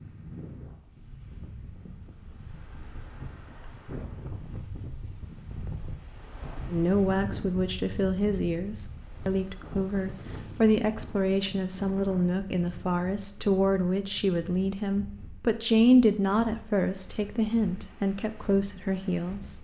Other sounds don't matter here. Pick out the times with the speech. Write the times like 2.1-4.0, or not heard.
6.7-19.5.